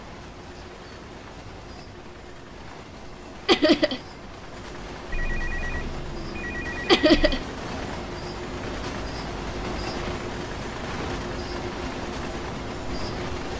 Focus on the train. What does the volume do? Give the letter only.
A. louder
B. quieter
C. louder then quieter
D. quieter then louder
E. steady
A.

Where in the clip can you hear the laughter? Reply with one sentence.
The laughter can be heard from 3.5 to 4.0 s and from 6.8 to 7.4 s.